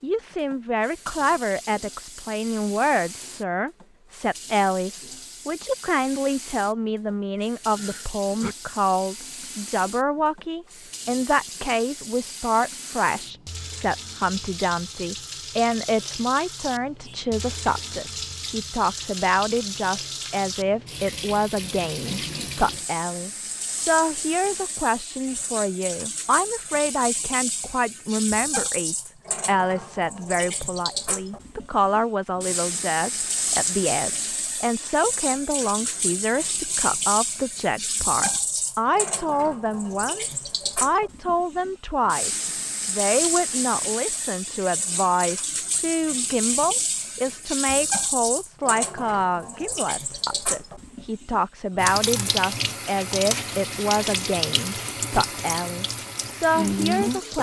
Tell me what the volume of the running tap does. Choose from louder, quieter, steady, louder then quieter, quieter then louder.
louder.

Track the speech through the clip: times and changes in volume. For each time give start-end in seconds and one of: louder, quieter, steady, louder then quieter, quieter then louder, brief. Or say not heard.
0.0-57.3 steady.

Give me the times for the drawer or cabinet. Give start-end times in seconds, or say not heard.
not heard.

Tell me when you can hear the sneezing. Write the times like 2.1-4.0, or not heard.
7.8-8.6.